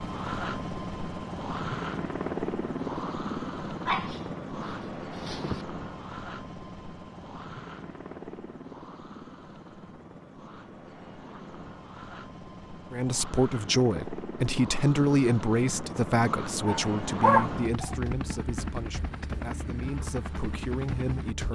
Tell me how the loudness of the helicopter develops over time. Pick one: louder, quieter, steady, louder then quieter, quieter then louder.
quieter then louder.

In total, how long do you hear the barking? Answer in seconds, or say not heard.
3 s.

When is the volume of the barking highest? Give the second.
17 s.